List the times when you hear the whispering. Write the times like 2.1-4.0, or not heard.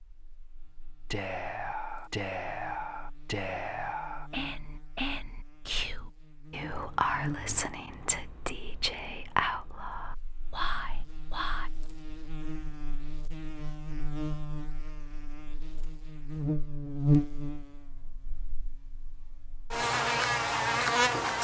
1.1-11.7.